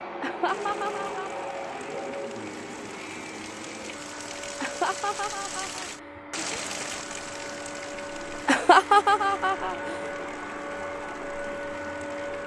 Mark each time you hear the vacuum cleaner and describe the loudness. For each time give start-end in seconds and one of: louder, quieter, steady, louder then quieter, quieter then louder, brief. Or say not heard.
0.0-12.4 quieter then louder.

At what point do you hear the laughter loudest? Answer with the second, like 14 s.
9 s.